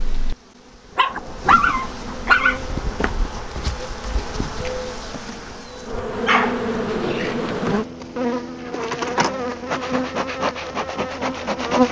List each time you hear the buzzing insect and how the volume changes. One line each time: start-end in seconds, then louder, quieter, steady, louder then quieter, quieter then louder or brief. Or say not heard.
0.0-11.8 louder.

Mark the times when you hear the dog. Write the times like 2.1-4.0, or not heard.
0.9-3.1, 6.2-7.5.